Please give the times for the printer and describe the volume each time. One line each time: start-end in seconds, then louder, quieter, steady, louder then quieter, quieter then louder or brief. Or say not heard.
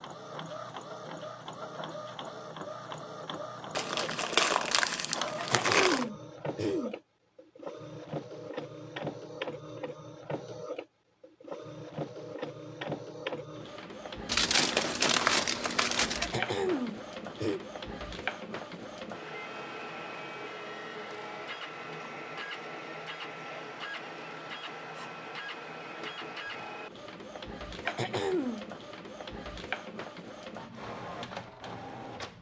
0.0-32.3 steady.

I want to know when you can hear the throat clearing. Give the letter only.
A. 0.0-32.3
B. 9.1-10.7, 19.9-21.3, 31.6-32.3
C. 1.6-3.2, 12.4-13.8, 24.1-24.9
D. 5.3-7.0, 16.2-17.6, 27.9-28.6
D.